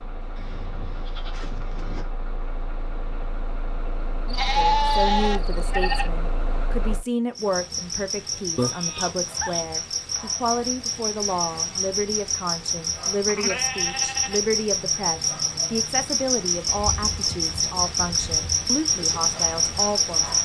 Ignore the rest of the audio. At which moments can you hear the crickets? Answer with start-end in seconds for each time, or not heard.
7.3-20.3.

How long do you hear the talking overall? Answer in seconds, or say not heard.
16 s.